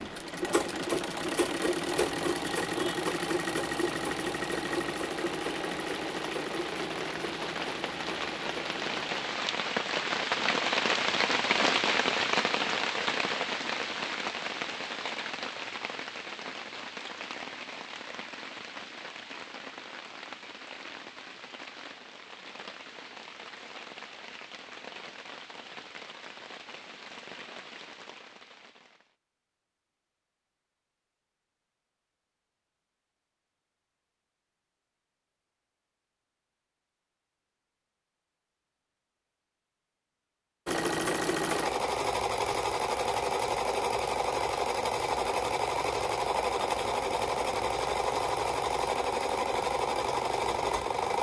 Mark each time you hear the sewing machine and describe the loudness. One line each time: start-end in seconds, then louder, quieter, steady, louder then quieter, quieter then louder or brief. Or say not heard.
0.0-9.4 quieter
40.6-51.1 steady.